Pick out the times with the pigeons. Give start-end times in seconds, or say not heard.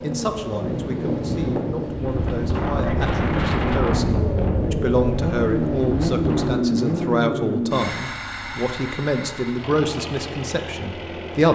not heard.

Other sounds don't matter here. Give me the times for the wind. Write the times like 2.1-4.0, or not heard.
0.0-6.6.